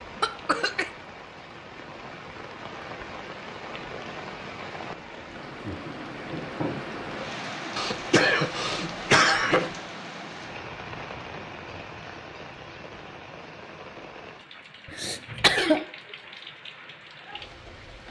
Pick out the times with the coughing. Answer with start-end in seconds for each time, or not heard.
0.2-0.9, 7.8-9.7, 14.8-15.8.